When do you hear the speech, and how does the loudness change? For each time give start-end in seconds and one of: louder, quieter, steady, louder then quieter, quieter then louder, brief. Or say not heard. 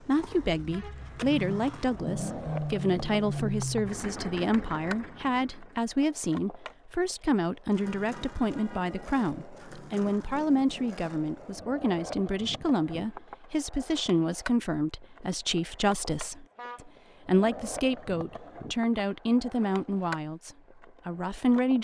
0.0-21.8 steady.